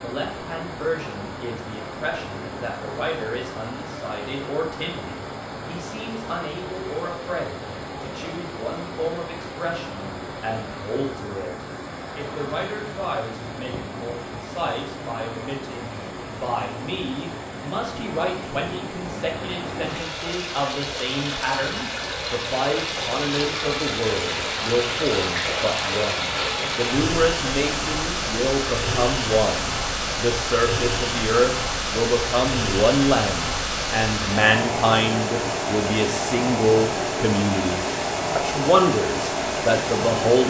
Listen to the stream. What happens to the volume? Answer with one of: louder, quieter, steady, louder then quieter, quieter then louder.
louder.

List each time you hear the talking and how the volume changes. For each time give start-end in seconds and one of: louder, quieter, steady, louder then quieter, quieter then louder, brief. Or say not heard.
0.0-40.4 louder.